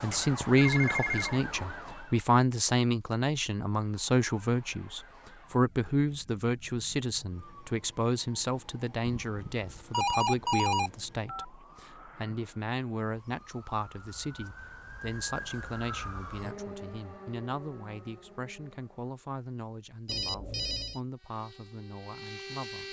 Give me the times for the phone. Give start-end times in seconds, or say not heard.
0.1-1.4, 9.2-11.4, 20.1-21.0.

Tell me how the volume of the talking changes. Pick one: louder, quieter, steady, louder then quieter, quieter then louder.
quieter.